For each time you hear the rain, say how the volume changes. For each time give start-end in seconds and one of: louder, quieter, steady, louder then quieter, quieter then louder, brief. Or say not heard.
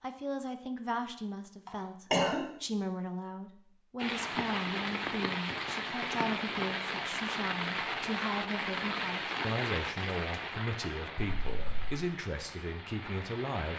4.0-13.7 quieter.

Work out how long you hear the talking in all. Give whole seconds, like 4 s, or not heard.
14 s.